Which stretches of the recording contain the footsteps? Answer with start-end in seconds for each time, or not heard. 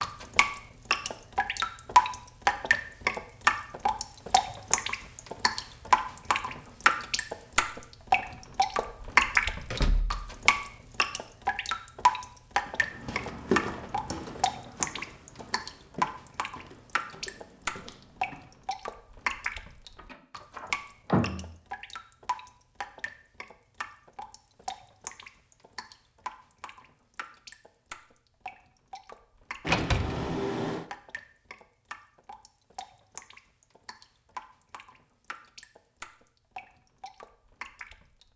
12.7-18.6.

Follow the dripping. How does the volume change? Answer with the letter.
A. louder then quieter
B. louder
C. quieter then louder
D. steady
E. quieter
E.